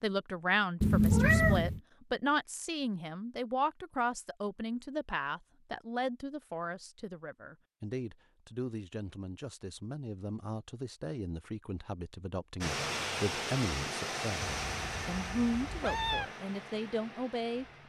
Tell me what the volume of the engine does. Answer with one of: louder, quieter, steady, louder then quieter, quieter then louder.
quieter.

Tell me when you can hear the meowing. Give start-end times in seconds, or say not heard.
0.8-1.8, 14.4-16.2.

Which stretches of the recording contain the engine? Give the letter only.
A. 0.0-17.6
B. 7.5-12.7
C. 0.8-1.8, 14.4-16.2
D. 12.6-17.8
D.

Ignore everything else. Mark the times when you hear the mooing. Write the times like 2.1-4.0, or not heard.
not heard.